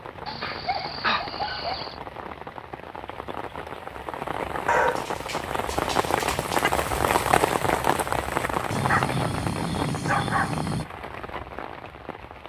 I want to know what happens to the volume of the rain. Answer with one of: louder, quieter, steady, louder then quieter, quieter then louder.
louder then quieter.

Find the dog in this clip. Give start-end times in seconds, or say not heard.
0.2-1.9, 4.7-6.7, 8.7-10.8.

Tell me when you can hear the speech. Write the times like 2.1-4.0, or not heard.
not heard.